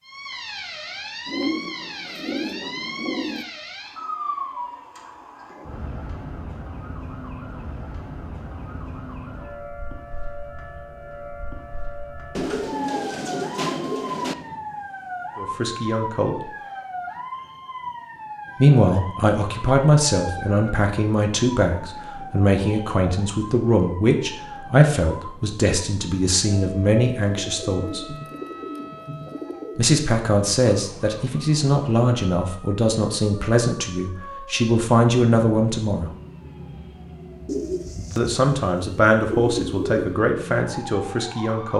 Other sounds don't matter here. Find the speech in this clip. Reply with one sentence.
The speech can be heard from 15.3 to 16.4 s, from 18.6 to 28.1 s, from 29.8 to 36.1 s and from 38.1 to 41.7 s.